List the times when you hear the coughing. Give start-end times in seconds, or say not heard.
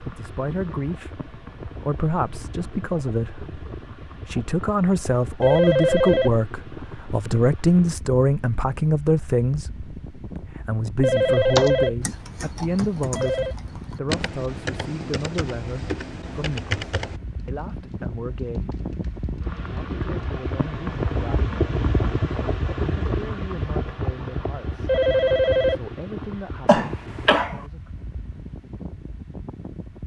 26.6-27.6.